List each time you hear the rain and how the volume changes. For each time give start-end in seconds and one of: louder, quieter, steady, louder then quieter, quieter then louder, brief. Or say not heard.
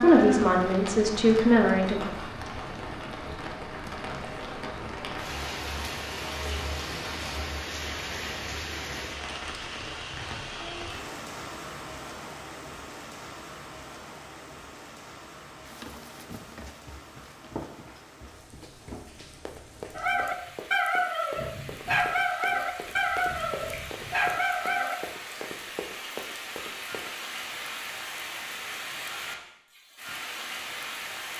0.0-31.3 quieter then louder.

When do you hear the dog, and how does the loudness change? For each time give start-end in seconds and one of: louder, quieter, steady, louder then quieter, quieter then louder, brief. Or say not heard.
19.9-24.9 steady.